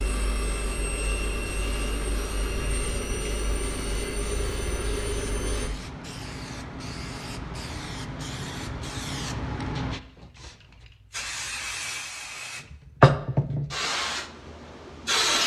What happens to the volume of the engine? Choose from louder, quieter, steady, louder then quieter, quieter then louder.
steady.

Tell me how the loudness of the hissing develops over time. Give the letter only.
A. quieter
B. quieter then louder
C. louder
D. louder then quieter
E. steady
C.